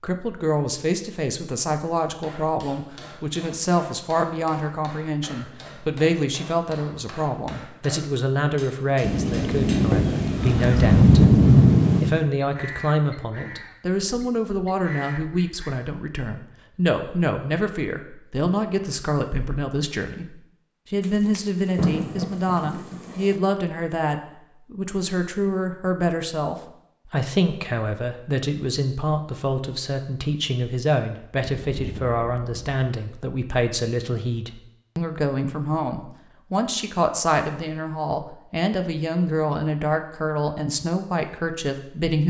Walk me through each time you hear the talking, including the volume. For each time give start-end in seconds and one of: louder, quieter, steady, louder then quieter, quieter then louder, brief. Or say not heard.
0.0-42.2 steady.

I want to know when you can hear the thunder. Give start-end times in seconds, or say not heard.
9.0-12.2, 21.0-23.4, 31.4-32.8.